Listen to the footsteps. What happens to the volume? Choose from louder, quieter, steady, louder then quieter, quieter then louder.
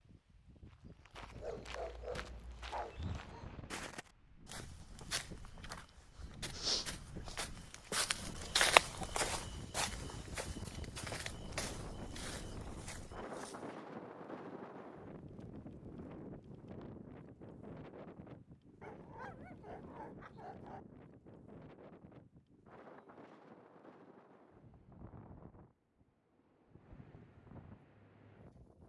louder then quieter.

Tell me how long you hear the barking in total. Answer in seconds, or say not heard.
4 s.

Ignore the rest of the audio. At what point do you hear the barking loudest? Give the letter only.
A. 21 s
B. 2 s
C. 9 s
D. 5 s
B.